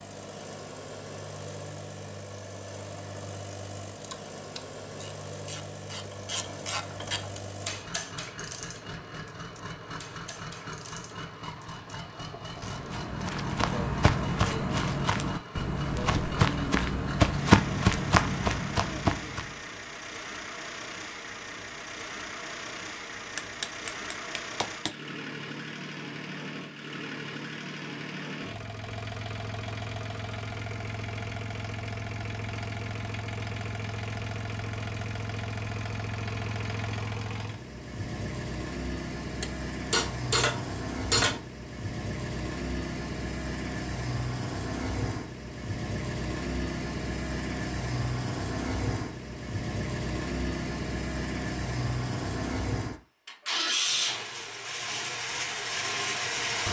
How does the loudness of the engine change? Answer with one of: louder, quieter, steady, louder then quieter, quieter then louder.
louder.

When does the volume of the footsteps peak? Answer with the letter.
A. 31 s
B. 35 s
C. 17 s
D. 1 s
C.